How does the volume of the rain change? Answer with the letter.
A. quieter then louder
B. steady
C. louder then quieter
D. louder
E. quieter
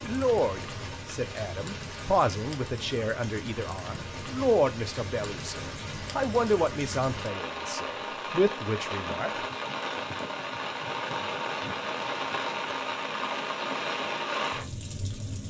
D.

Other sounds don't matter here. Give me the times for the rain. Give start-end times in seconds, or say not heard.
0.0-15.4.